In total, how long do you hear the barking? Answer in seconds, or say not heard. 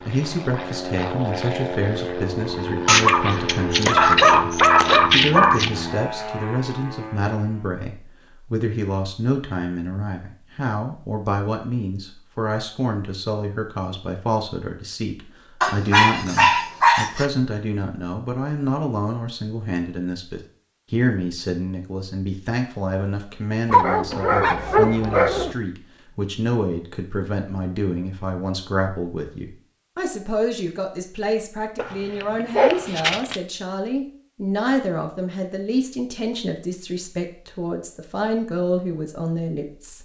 8 s.